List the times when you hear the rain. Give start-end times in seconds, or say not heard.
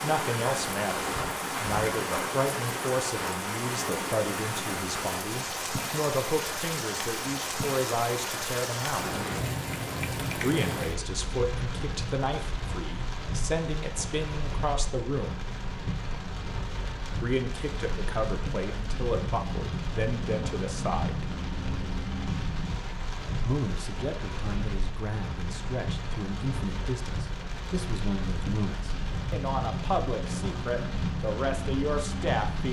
0.0-32.6.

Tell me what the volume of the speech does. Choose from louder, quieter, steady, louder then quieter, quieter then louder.
steady.